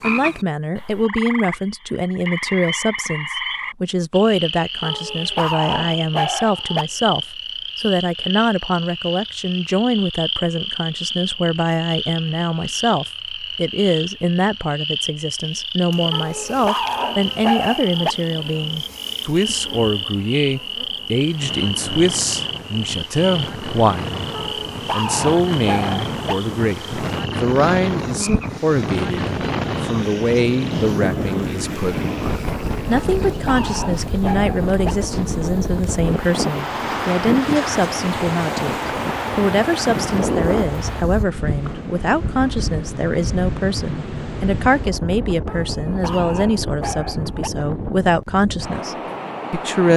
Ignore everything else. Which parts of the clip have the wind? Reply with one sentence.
You can hear the wind from 21.4 to 49.9 s.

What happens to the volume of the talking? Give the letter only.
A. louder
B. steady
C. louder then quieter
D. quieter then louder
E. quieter
B.